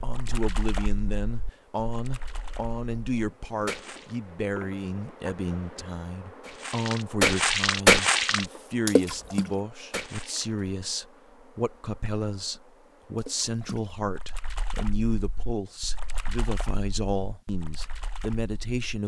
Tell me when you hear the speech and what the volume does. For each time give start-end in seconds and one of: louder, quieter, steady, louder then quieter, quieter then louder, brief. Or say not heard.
0.0-19.0 steady.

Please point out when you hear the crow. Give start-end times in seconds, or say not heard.
not heard.